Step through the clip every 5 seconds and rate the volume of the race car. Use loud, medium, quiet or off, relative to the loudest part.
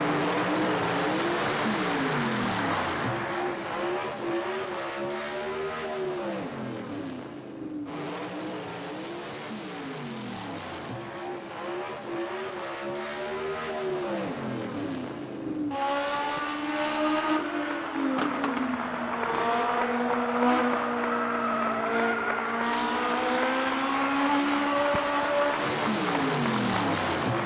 loud, medium, medium, loud, loud, loud.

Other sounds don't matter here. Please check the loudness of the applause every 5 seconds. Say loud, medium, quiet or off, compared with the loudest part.
loud, off, off, loud, loud, loud.